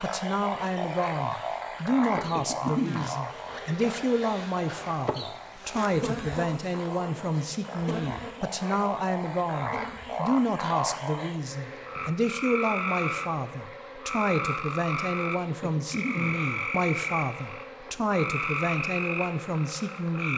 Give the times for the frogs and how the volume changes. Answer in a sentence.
The frogs can be heard from 0.0 to 20.3 s, getting quieter then louder.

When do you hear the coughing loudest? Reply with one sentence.
The loudest moment of the coughing is at 3 seconds.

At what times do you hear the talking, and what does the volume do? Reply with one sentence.
The talking can be heard from 0.0 to 20.3 s, at a steady volume.